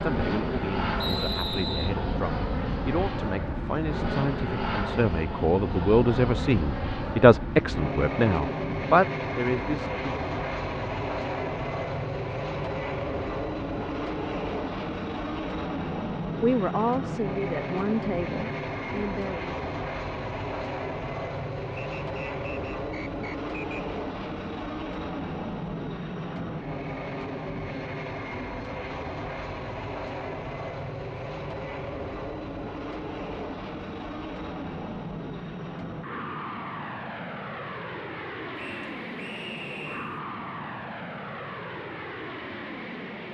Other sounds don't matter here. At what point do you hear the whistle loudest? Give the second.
1 s.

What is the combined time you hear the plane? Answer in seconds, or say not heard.
43 s.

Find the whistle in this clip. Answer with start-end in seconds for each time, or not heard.
0.9-1.9, 21.8-23.8, 38.5-40.2.